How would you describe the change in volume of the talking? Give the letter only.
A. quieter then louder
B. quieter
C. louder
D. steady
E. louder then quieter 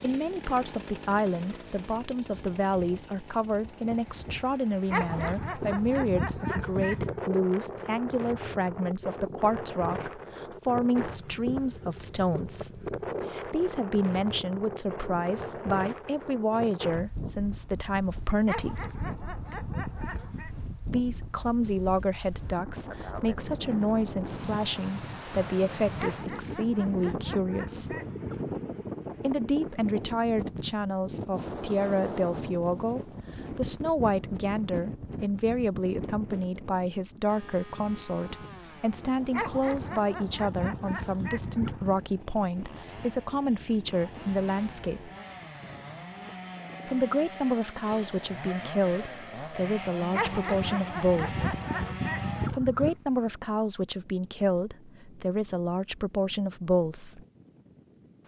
D.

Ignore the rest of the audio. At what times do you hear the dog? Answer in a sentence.
You can hear the dog from 4.9 to 7.2 s, from 18.4 to 20.6 s, from 25.9 to 28.6 s, from 39.3 to 42.0 s and from 50.1 to 53.0 s.